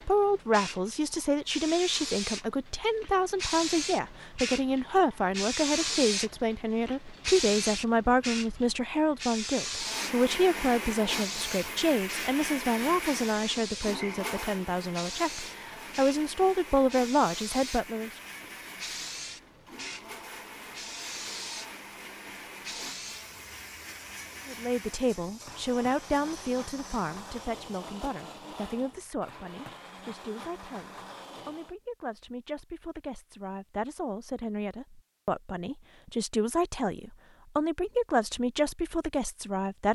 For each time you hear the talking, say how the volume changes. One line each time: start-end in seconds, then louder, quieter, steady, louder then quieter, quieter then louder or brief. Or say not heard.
0.1-18.1 steady
24.4-39.8 quieter then louder.